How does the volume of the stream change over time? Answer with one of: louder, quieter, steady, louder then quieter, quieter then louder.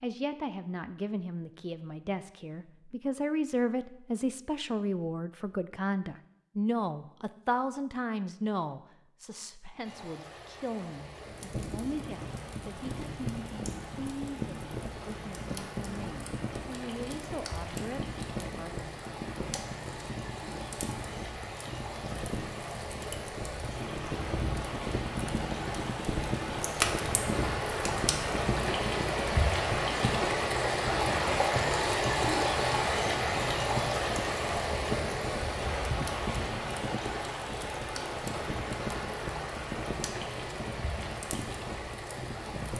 louder then quieter.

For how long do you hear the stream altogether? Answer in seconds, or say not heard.
33 s.